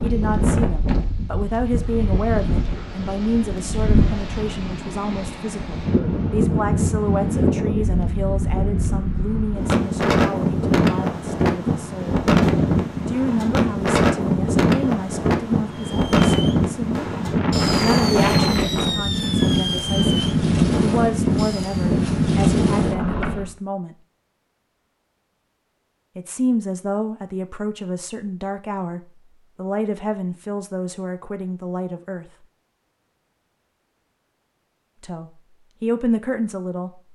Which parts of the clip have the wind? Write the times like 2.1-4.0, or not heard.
0.0-23.6.